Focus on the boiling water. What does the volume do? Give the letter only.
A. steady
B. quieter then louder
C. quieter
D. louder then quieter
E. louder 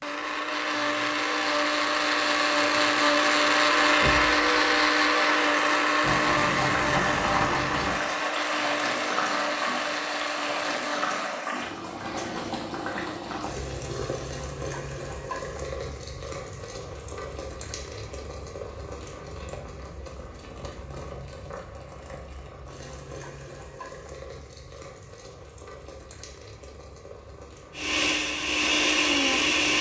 C.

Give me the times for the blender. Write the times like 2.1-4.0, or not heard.
0.0-11.4, 27.8-29.7.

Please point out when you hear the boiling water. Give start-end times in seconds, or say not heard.
6.0-29.7.